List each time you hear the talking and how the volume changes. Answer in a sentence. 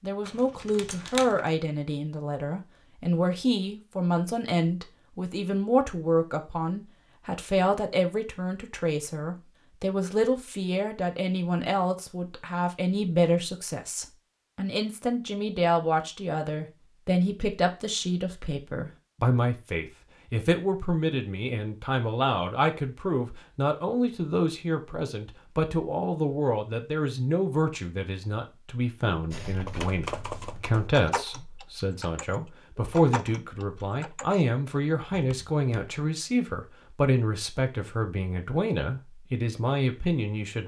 You can hear the talking from 0.0 to 40.6 s, at a steady volume.